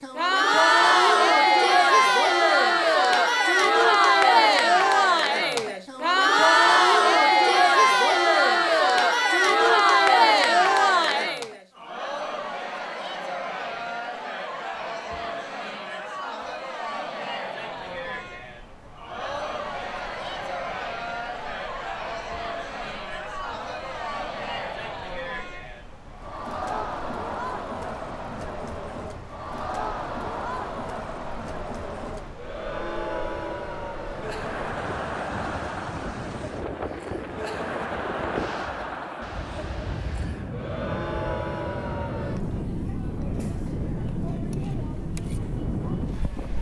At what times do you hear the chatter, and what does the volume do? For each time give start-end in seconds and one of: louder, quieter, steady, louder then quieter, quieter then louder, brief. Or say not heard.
0.0-46.5 quieter.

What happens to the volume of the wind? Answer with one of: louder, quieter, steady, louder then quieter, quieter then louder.
louder.